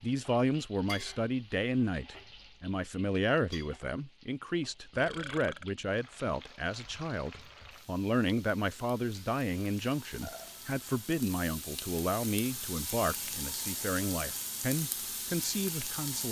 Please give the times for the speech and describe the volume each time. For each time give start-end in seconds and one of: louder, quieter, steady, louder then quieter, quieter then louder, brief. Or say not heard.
0.0-16.2 steady.